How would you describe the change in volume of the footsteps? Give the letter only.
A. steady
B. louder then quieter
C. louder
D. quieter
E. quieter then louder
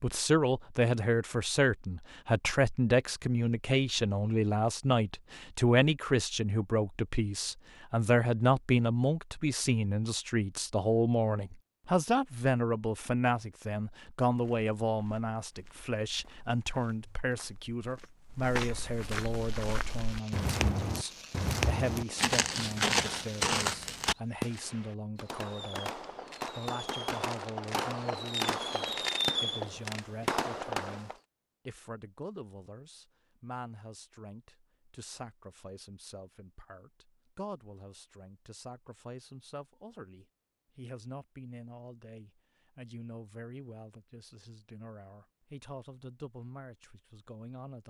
C.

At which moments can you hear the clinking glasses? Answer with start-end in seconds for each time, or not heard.
not heard.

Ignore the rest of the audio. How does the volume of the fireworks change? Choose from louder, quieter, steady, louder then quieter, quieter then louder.
louder.